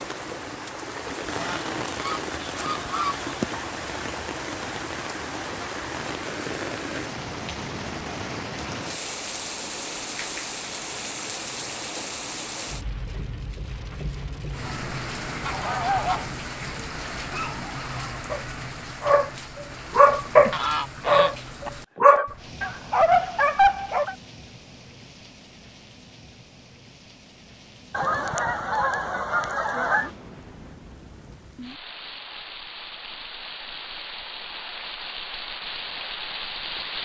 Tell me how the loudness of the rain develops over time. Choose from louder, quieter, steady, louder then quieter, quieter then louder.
quieter then louder.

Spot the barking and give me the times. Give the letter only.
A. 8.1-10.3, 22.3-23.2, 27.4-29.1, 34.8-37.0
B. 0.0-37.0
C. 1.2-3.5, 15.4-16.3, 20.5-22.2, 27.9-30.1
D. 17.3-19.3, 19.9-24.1
D.